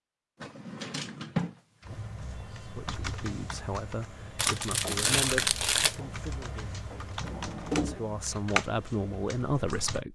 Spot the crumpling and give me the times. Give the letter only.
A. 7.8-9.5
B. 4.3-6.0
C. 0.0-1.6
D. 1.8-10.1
B.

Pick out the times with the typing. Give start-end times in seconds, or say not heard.
1.8-10.1.